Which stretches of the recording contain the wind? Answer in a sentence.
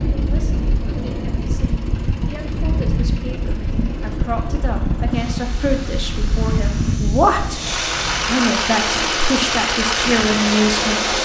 You can hear the wind from 0.0 to 11.2 s.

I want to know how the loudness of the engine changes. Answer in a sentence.
The loudness of the engine goes up.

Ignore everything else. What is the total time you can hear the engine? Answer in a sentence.
The engine can be heard for 11 seconds in total.